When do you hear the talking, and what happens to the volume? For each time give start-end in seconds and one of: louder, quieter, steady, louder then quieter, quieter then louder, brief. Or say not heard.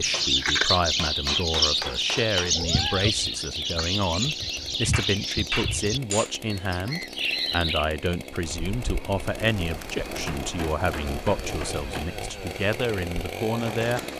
0.0-14.0 steady.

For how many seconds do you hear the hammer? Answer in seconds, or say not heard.
6 s.